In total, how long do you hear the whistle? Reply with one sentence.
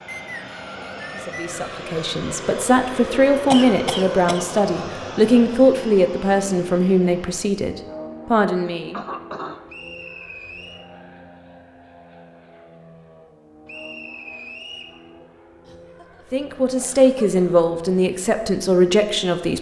The whistle can be heard for 4 seconds in total.